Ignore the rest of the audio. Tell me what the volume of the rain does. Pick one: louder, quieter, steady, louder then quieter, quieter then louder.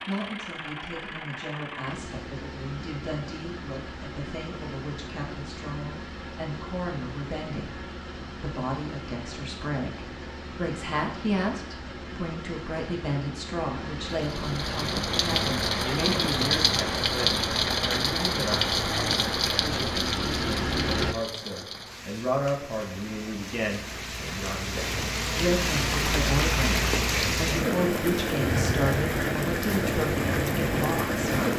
quieter then louder.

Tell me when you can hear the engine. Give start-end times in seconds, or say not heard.
0.0-21.1.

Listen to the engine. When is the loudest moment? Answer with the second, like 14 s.
21 s.